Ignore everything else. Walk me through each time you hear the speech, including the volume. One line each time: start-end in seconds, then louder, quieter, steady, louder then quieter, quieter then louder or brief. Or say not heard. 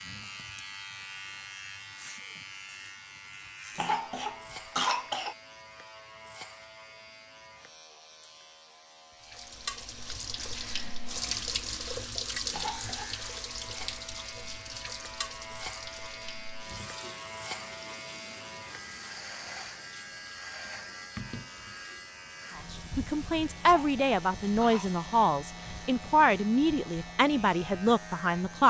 22.9-28.6 steady.